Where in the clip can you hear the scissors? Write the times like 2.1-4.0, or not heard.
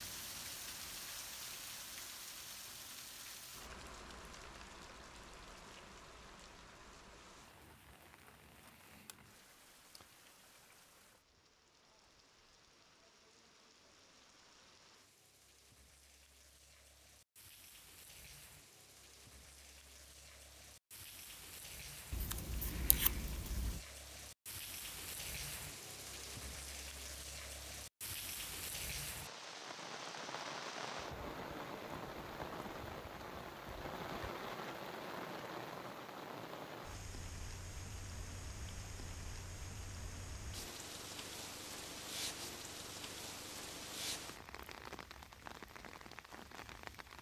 22.1-23.8.